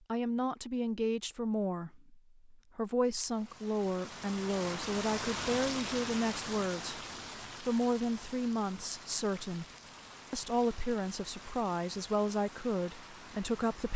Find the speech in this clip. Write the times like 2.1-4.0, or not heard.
0.1-7.0, 7.6-9.7, 10.3-13.9.